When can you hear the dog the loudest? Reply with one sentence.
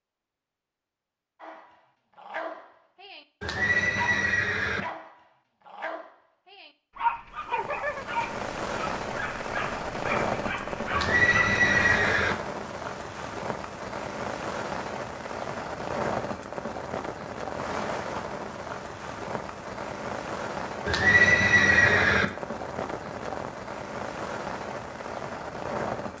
The volume of the dog peaks at 7 seconds.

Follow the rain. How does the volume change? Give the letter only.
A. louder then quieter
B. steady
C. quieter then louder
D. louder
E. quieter
B.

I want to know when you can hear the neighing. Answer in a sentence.
The neighing can be heard from 3.4 to 4.8 s, from 10.9 to 12.3 s and from 20.9 to 22.2 s.